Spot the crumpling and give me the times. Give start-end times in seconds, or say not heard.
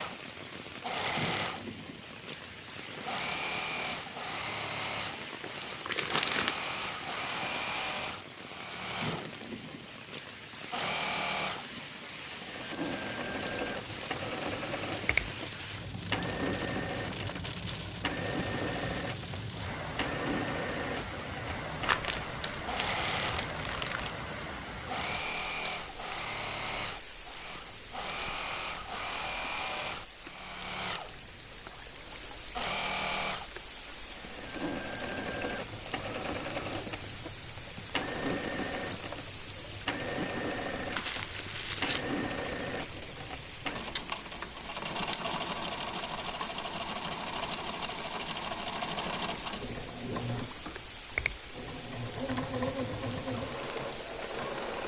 5.1-6.5, 21.8-24.1, 41.0-42.0.